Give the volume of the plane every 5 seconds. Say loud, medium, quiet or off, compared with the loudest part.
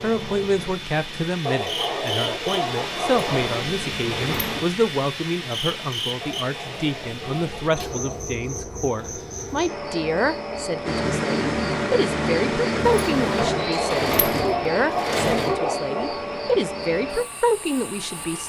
medium, medium, loud, quiet.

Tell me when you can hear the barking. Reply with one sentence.
The barking can be heard from 1.4 to 3.5 s, from 6.2 to 8.3 s and from 13.3 to 16.2 s.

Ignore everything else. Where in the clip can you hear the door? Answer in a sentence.
You can hear the door from 3.2 to 4.7 s and from 12.8 to 15.6 s.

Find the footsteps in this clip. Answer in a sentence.
The footsteps can't be heard in this clip.